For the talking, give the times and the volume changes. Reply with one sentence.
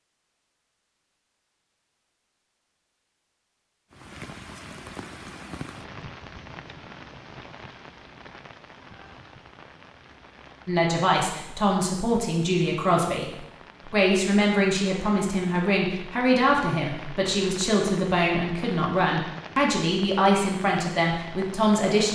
You can hear the talking from 10.7 to 22.0 s, at a steady volume.